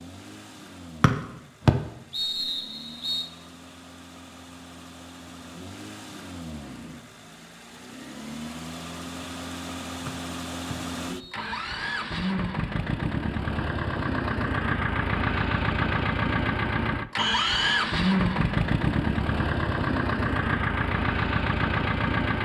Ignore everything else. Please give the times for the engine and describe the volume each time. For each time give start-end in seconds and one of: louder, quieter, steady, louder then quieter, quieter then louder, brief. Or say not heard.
0.0-22.4 louder.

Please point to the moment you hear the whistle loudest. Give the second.
2 s.